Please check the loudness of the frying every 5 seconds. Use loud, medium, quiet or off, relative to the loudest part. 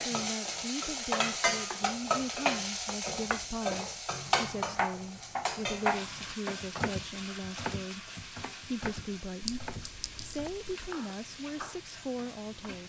loud, medium, quiet.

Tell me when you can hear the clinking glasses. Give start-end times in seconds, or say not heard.
9.4-10.6.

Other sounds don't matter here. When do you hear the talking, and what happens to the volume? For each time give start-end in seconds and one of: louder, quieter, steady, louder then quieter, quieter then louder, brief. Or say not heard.
0.1-12.8 steady.